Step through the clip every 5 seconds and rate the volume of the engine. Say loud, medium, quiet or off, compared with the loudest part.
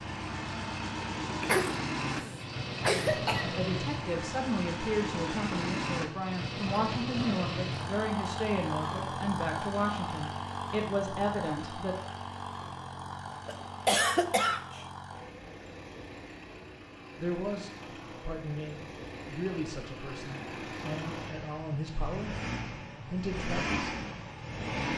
loud, loud, medium, medium, loud.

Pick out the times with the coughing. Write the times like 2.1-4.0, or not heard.
1.4-3.5, 13.4-14.8.